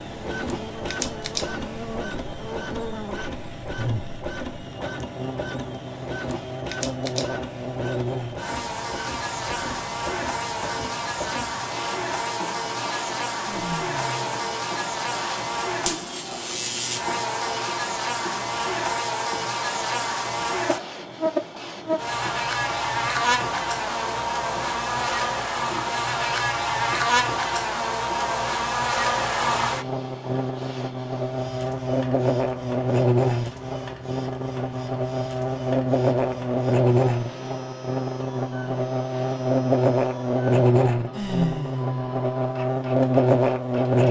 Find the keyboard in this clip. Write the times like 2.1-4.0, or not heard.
not heard.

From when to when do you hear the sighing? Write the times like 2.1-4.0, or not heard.
13.4-14.4, 41.1-42.1.